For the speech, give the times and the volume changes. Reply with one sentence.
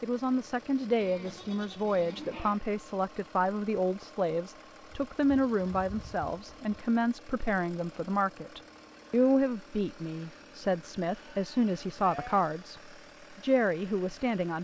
The speech can be heard from 0.0 to 14.6 s, at a steady volume.